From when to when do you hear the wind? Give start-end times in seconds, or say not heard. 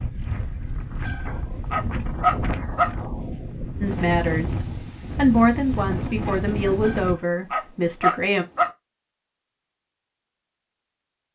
0.0-7.2.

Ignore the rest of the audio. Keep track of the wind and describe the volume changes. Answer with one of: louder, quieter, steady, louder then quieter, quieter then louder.
louder.